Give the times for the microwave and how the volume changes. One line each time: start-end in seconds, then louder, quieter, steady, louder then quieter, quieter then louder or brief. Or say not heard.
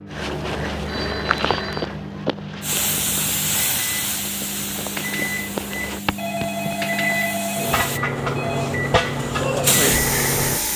0.0-10.7 louder.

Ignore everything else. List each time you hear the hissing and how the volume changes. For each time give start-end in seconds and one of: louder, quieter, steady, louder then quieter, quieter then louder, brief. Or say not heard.
2.6-10.7 quieter then louder.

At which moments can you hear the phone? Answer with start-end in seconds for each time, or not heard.
0.8-1.9, 6.2-8.8.